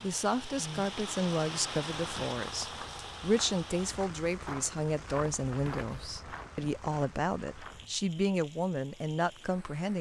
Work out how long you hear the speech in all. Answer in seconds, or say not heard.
10 s.